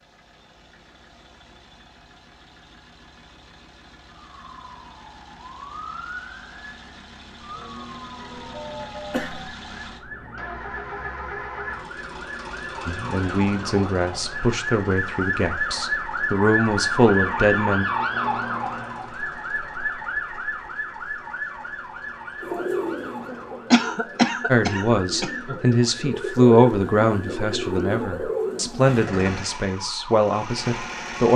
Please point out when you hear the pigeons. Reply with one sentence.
The pigeons can be heard from 22.4 to 28.9 s.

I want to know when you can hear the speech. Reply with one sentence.
The speech can be heard from 12.8 to 17.9 s and from 24.4 to 31.3 s.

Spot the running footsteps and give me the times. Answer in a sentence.
You can't hear the running footsteps here.